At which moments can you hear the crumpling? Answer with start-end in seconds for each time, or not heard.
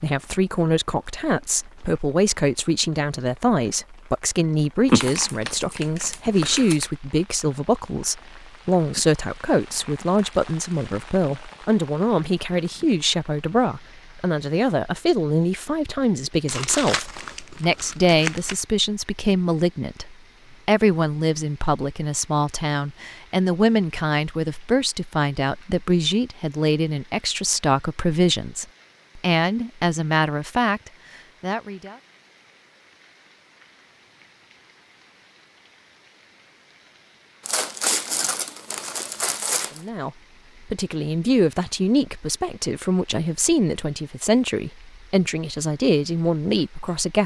4.8-6.9, 16.4-18.6, 37.5-39.8.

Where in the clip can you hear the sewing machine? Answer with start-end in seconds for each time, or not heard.
not heard.